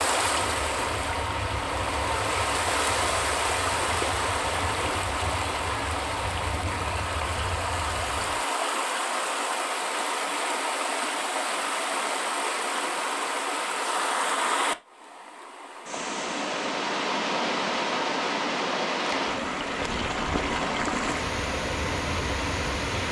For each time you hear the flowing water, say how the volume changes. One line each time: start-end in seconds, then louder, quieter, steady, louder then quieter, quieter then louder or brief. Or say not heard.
0.0-23.0 steady.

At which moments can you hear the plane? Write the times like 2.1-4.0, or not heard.
0.0-8.4.